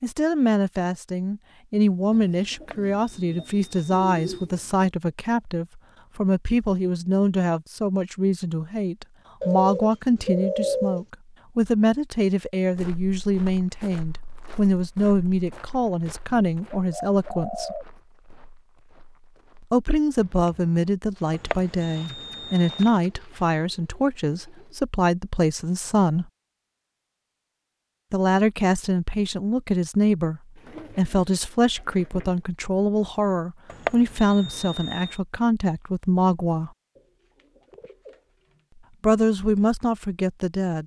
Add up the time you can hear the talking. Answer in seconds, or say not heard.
35 s.